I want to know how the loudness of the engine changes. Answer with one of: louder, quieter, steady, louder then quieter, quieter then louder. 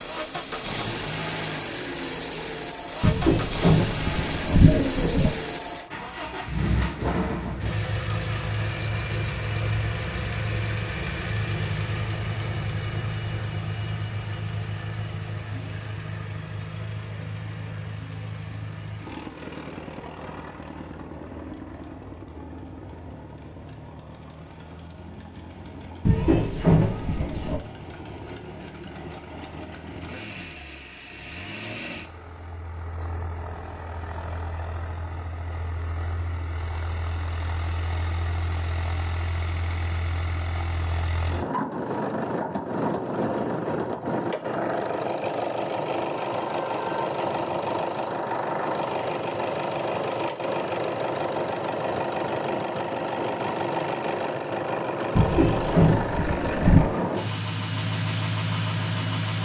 quieter then louder.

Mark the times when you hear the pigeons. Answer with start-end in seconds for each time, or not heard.
3.0-5.3, 26.1-27.6, 55.1-57.0.